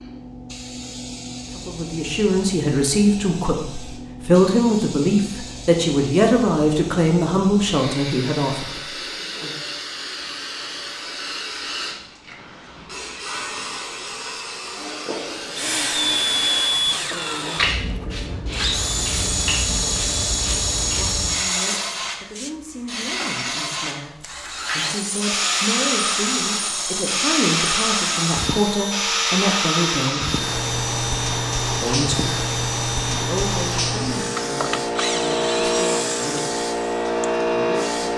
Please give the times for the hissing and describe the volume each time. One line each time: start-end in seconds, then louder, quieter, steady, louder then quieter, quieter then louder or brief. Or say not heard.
0.0-38.1 louder.